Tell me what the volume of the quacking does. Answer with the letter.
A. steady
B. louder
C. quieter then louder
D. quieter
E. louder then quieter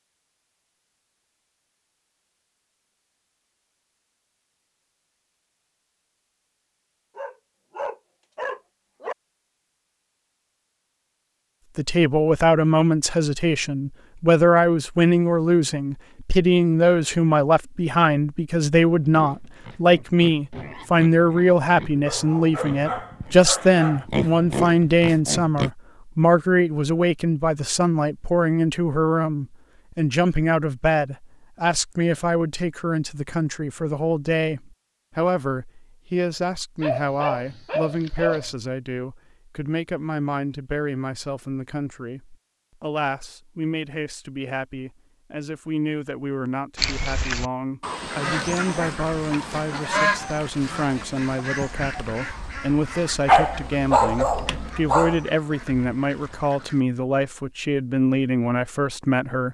D.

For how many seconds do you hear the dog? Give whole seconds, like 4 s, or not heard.
8 s.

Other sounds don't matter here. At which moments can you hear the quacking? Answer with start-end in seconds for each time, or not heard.
46.8-56.8.